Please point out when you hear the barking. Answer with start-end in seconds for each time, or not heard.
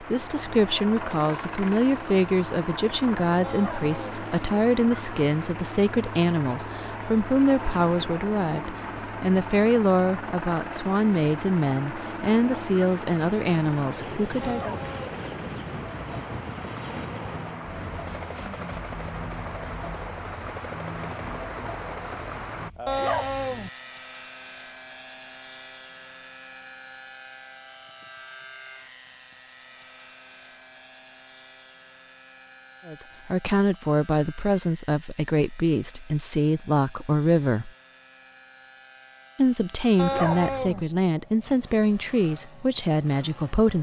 3.4-4.1, 14.4-15.2, 22.9-23.7, 40.0-40.9.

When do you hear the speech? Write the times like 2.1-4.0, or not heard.
0.0-14.8, 32.9-37.7, 39.4-43.7.